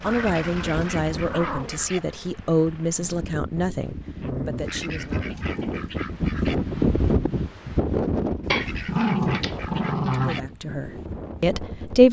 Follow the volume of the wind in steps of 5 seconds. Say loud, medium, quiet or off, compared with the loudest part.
medium, loud, medium.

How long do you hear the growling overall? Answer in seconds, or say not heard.
5 s.